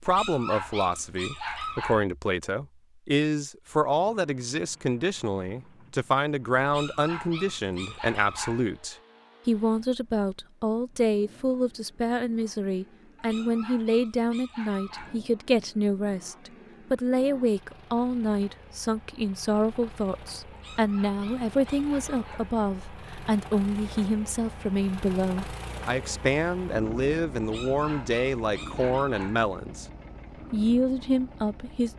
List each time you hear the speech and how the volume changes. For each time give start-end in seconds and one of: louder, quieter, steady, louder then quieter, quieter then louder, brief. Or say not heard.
0.0-29.9 steady
30.5-31.9 brief.